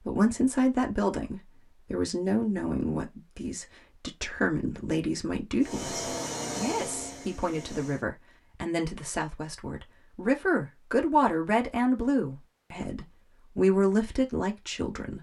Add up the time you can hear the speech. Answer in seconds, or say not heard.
15 s.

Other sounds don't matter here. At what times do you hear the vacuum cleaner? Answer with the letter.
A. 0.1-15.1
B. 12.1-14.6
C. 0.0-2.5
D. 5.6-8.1
D.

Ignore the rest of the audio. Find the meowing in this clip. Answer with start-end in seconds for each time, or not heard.
not heard.